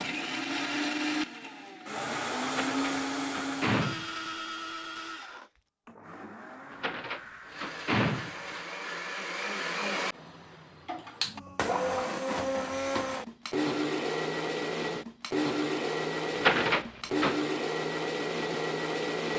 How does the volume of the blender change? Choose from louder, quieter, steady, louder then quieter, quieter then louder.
quieter then louder.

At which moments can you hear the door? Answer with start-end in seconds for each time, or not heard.
2.5-4.3, 6.7-8.6, 16.3-17.4.